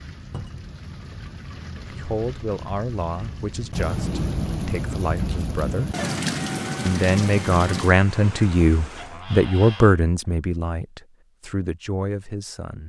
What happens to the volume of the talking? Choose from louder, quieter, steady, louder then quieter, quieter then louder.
louder then quieter.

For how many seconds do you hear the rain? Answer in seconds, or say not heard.
9 s.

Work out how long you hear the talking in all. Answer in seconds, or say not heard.
10 s.